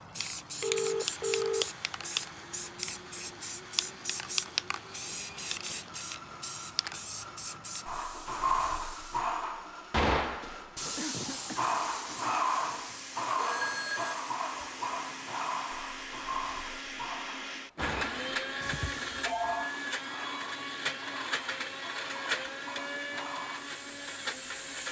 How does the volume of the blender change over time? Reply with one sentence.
The volume of the blender goes up.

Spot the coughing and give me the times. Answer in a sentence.
The coughing can be heard from 10.9 to 11.6 s.